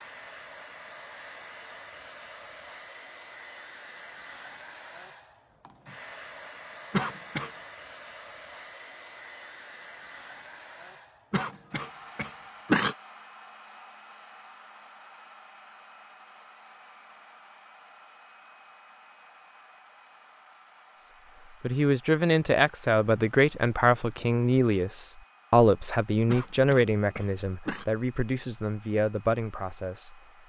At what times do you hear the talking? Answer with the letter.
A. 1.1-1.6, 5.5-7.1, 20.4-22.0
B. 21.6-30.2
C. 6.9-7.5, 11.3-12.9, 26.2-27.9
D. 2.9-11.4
B.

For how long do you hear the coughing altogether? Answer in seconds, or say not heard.
4 s.